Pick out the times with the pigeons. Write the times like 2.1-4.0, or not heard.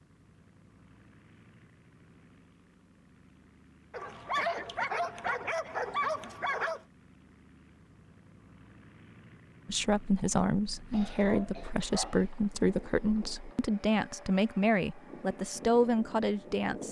not heard.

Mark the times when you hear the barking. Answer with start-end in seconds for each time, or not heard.
3.9-6.8, 11.2-12.2.